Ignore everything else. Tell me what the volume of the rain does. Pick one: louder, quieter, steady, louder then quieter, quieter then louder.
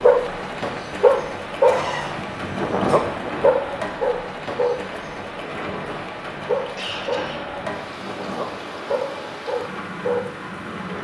steady.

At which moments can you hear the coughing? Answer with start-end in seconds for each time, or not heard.
1.6-3.0, 6.5-7.4.